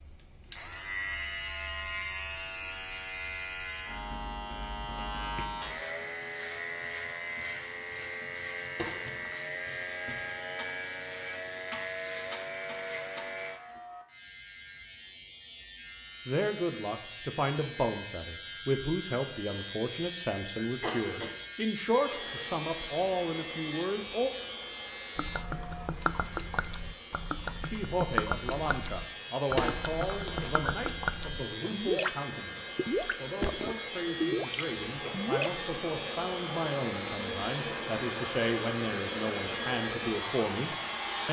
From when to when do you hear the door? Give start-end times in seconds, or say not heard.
not heard.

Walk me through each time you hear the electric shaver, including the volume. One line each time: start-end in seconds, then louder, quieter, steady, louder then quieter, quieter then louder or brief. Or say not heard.
0.0-41.2 steady.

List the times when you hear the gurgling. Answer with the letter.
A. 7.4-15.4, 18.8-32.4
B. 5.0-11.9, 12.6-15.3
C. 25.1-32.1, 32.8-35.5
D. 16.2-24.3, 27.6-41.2
C.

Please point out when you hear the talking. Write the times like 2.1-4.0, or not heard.
16.2-24.3, 27.6-41.2.